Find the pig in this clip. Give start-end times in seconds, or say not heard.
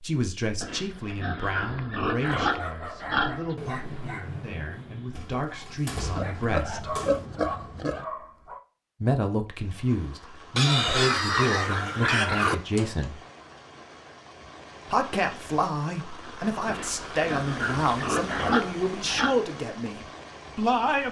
0.6-3.5, 6.2-8.1, 10.6-12.6, 16.6-19.4.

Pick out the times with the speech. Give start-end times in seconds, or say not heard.
0.0-6.9, 9.0-13.2, 14.9-21.0.